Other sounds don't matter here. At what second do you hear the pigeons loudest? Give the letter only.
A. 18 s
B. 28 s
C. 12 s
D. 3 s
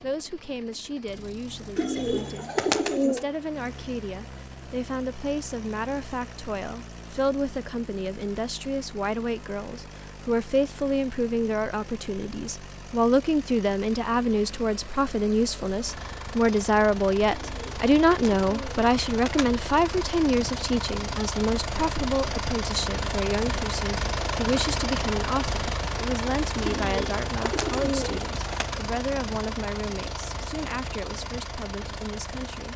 D.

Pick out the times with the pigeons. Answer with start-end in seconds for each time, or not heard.
1.8-3.2, 17.2-19.5, 26.6-28.8.